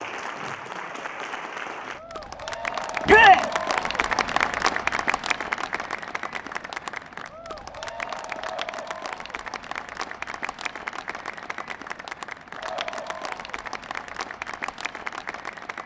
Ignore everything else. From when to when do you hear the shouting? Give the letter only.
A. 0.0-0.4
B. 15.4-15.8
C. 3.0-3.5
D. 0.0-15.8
C.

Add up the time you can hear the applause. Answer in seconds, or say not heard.
16 s.